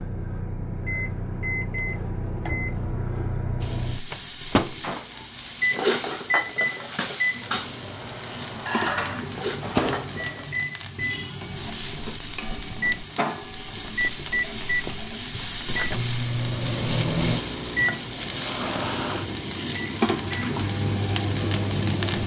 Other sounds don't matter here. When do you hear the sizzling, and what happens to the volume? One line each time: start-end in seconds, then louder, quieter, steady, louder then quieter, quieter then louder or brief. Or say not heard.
3.6-22.2 louder.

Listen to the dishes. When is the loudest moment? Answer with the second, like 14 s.
6 s.